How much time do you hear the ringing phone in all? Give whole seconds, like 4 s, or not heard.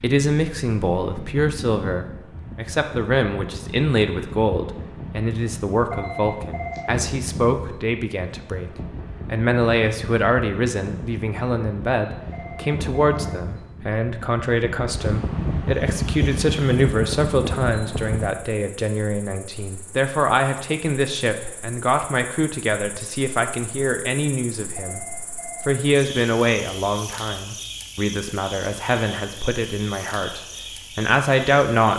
3 s.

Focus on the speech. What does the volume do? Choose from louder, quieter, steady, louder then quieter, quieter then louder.
steady.